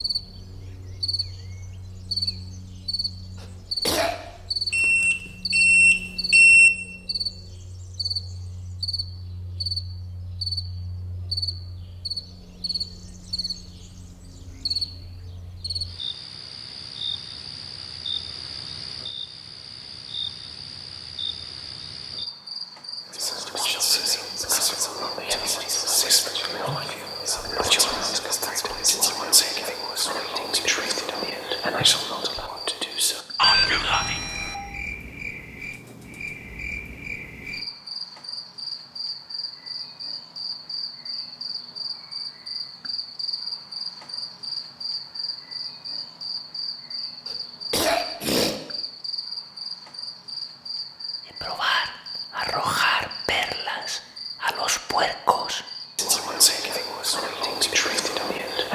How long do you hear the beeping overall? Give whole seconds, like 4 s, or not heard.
3 s.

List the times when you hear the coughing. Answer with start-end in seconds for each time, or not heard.
3.4-4.2, 47.2-48.5.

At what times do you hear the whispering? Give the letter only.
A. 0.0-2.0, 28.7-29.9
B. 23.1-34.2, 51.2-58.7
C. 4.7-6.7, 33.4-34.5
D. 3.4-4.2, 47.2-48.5
B.